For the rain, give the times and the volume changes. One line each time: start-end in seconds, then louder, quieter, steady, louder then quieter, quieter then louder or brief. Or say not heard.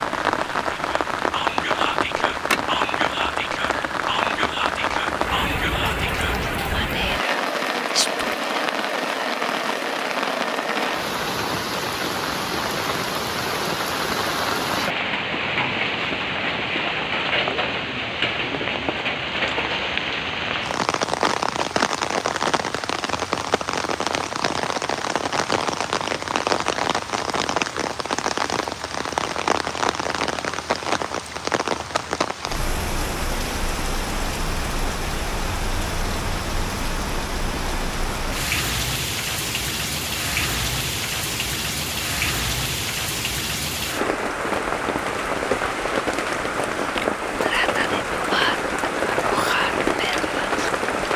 0.0-51.1 steady.